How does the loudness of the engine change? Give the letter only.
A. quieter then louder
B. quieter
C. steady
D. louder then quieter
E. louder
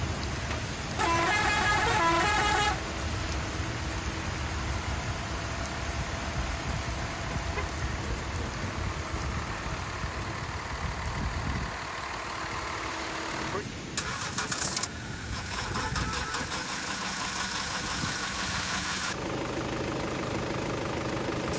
E.